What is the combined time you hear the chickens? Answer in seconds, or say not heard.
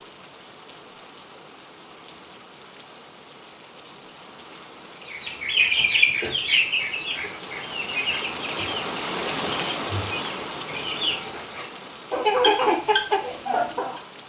9 s.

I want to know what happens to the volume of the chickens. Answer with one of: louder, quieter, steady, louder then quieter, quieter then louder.
quieter then louder.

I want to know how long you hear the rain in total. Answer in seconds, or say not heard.
14 s.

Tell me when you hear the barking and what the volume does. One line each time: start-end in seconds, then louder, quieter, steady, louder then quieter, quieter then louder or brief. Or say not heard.
not heard.